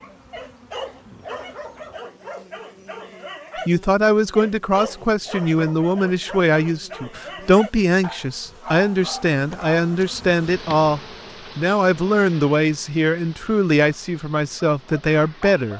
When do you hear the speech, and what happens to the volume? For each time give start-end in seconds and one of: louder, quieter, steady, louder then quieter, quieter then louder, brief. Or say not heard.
3.6-15.7 steady.